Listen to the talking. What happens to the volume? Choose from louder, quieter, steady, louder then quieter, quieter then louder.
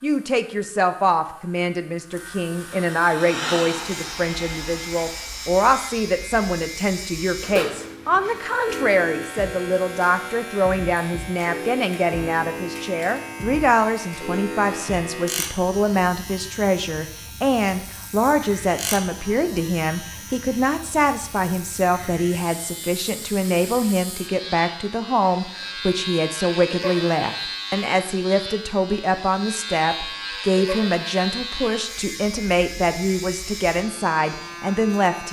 steady.